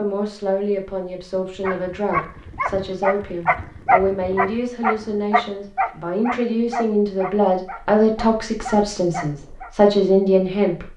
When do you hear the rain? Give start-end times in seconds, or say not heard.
not heard.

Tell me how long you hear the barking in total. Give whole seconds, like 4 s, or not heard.
8 s.